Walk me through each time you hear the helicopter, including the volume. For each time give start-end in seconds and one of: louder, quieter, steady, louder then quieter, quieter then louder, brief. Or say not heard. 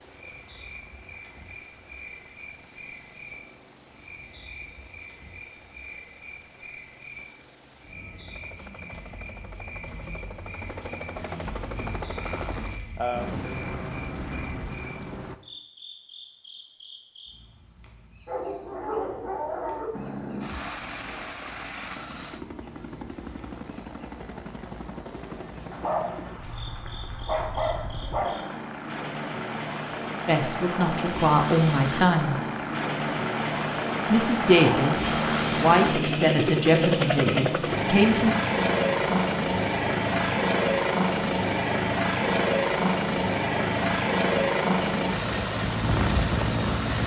0.0-15.4 louder
19.9-47.0 louder.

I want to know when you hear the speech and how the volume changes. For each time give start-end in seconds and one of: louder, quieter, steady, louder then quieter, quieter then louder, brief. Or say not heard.
30.2-32.4 brief
34.1-38.4 quieter.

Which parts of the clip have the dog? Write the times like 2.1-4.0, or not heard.
18.2-19.9, 25.7-28.5.